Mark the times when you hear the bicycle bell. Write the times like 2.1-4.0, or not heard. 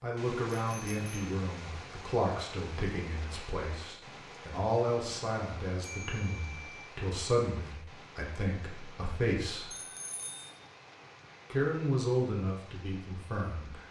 0.5-1.1, 5.8-6.9, 9.7-10.5.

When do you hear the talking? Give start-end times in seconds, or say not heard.
0.0-9.7, 11.5-13.8.